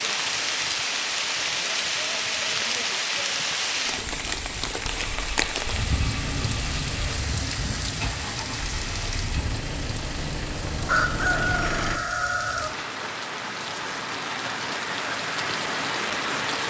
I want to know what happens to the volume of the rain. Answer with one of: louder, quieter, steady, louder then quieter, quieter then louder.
quieter then louder.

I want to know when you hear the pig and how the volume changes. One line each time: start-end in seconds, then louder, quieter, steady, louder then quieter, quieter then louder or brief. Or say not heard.
not heard.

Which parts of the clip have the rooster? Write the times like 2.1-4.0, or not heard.
10.8-12.7.